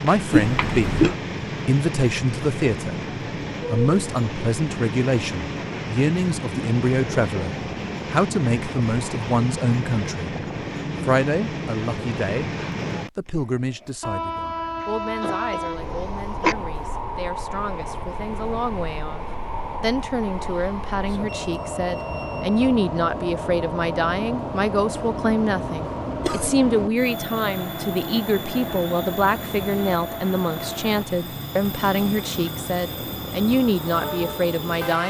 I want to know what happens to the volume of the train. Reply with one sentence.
The loudness of the train stays about the same.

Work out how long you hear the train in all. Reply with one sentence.
The train can be heard for 35 seconds in total.